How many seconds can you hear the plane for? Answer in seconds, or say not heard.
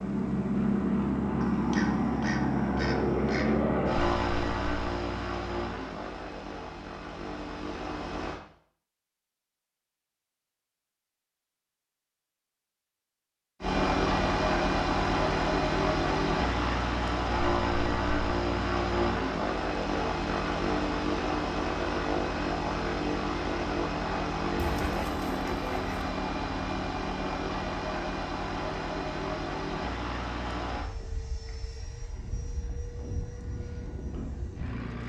30 s.